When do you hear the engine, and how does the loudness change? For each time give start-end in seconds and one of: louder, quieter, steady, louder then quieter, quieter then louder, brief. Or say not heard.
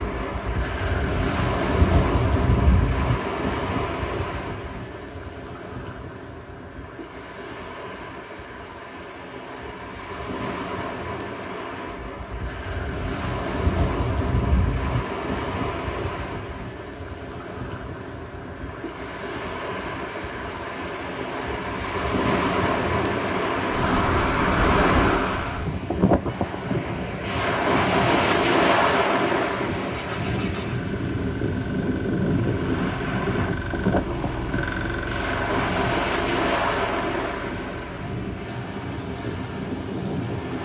29.9-40.6 louder then quieter.